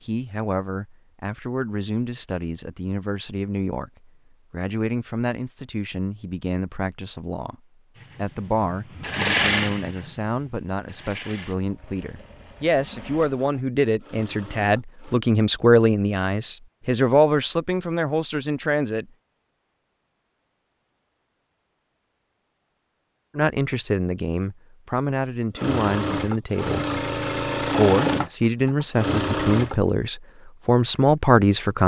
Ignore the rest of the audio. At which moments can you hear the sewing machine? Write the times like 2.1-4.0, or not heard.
8.0-15.2, 25.6-29.8.